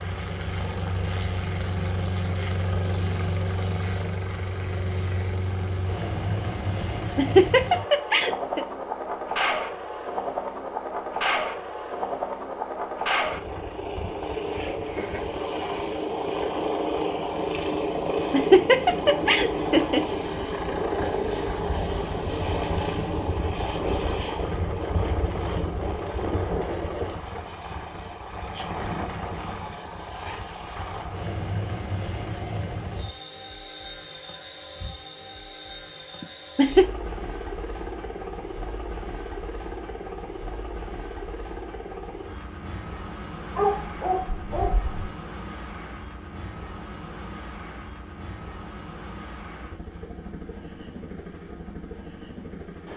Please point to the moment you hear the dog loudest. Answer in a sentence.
The volume of the dog peaks at 44 seconds.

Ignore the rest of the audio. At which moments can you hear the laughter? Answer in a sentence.
You can hear the laughter from 7.2 to 8.7 s, from 18.3 to 20.1 s and from 36.2 to 36.9 s.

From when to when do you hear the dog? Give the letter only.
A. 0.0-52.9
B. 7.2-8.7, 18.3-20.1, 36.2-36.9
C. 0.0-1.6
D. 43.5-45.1
D.